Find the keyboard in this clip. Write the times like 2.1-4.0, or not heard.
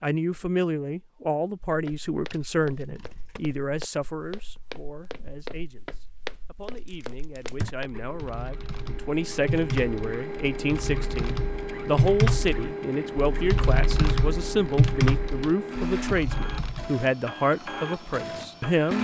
7.6-16.9.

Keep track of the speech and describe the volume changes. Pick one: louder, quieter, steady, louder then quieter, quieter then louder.
quieter then louder.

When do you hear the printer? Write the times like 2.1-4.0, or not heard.
7.9-18.9.